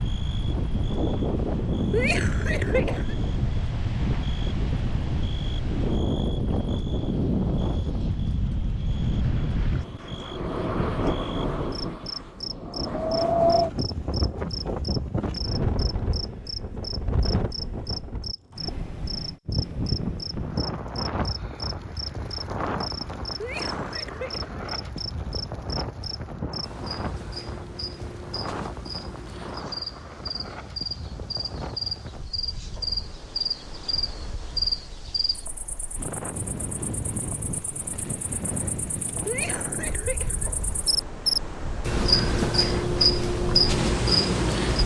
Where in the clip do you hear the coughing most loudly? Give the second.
2 s.